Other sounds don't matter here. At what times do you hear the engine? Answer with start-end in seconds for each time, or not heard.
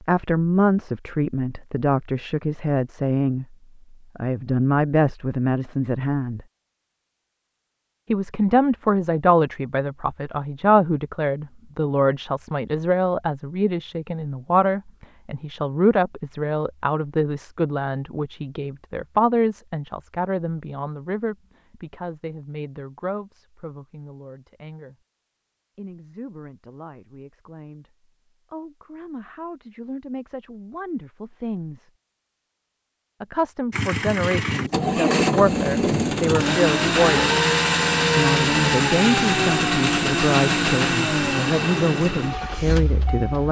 33.7-43.4.